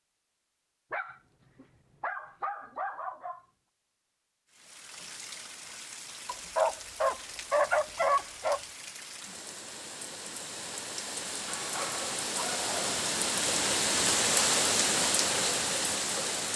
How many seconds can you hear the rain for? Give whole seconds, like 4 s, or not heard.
12 s.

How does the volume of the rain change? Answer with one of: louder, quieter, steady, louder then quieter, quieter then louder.
louder.